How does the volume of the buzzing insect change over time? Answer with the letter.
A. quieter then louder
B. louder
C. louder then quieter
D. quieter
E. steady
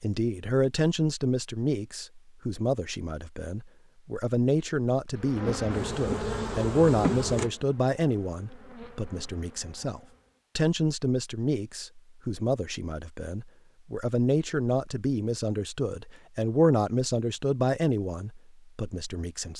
D.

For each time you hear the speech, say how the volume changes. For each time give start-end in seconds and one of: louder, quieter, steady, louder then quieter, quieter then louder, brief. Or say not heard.
0.0-19.5 steady.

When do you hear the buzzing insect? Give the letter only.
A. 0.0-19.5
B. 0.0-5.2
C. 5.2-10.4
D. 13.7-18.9
C.